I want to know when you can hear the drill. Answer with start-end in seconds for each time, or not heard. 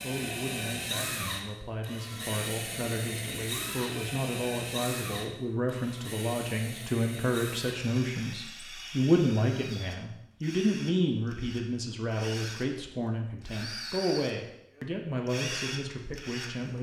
0.0-16.7.